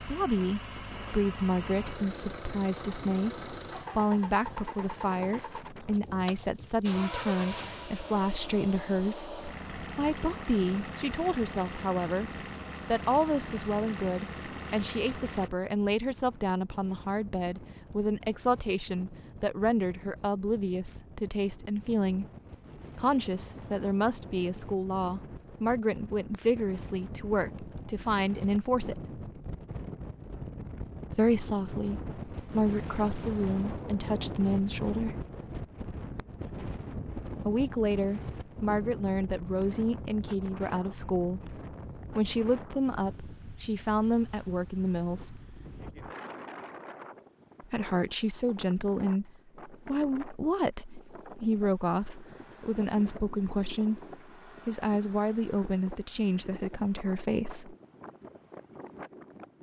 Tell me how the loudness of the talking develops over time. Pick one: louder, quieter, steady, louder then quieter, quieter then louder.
steady.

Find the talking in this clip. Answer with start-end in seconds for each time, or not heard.
0.1-22.2, 22.9-29.2, 31.1-35.2, 37.5-45.5, 47.6-57.8.